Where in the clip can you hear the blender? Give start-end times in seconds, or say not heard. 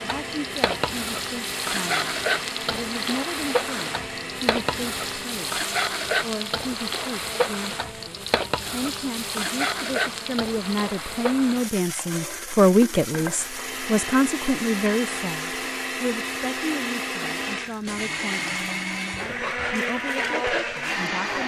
0.0-5.4, 13.3-21.4.